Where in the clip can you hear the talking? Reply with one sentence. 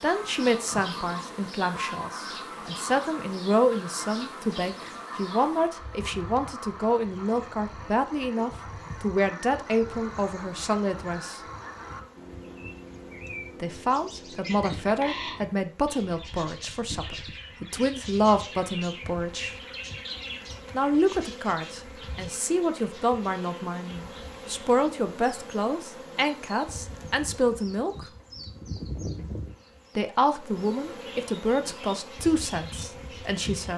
The talking can be heard from 0.0 to 11.4 s, from 13.6 to 19.6 s, from 20.7 to 28.1 s and from 29.9 to 33.7 s.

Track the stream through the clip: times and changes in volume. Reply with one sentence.
The stream can't be heard in this clip.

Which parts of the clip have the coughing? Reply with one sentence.
The coughing can't be heard in this clip.